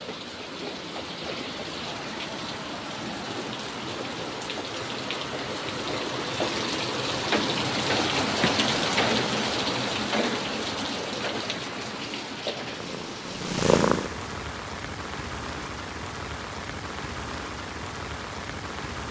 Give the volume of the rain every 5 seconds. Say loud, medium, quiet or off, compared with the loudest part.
medium, loud, medium, medium.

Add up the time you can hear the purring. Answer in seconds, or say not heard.
2 s.